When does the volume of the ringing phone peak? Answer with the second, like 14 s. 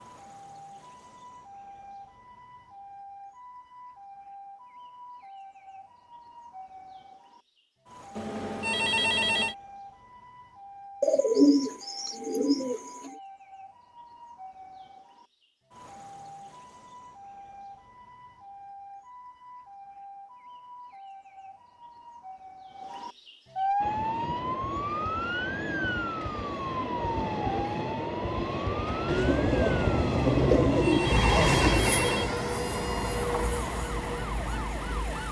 9 s.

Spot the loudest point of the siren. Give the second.
24 s.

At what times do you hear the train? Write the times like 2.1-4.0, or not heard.
23.8-35.2.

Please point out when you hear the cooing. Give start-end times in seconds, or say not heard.
11.0-13.1, 29.1-31.9.